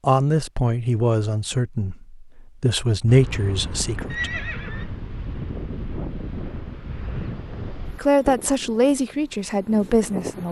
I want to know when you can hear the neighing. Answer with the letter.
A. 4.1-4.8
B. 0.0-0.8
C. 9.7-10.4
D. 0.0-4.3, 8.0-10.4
A.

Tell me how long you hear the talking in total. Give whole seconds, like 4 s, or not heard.
7 s.